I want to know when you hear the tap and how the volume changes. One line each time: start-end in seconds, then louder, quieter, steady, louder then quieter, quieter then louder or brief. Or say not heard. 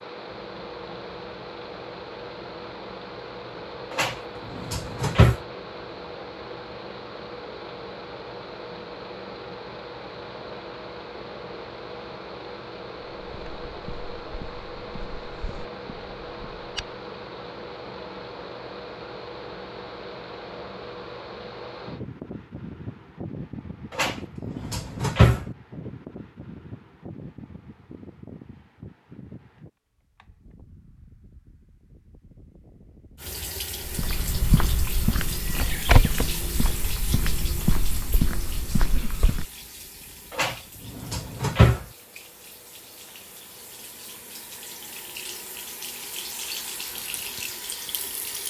33.1-48.4 quieter then louder.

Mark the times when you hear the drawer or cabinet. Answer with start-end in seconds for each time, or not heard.
3.9-5.3, 23.9-25.4, 40.4-41.9.